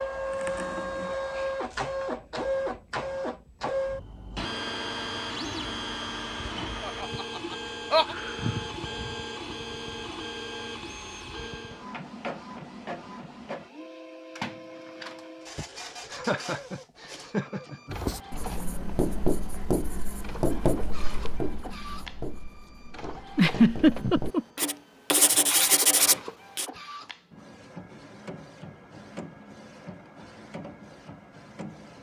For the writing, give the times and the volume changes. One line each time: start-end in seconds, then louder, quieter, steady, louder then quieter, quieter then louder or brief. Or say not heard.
17.9-26.6 quieter then louder.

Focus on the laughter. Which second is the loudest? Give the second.
24 s.